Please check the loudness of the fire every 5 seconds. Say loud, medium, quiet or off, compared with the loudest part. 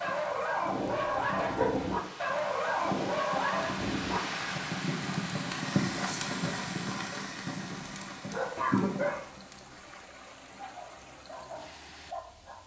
medium, loud, off.